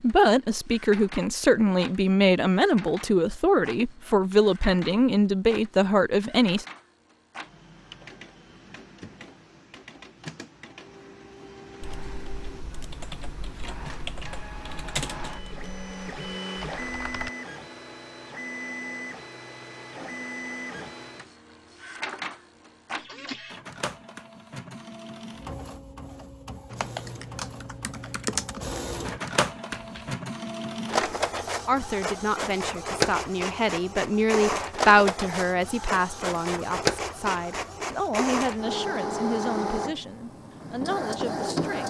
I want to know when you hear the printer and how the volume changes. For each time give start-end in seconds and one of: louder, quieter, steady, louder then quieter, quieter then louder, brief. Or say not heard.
0.0-41.8 louder.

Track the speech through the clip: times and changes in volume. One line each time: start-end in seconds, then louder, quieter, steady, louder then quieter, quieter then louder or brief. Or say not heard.
0.0-6.7 steady
31.6-41.8 louder then quieter.